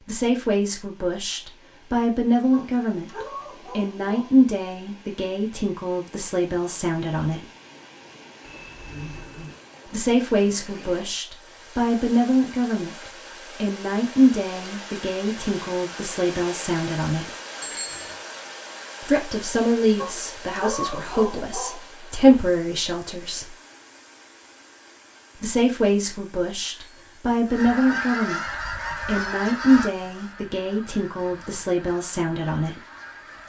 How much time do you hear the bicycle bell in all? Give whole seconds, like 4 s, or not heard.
2 s.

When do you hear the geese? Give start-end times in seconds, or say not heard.
27.4-33.4.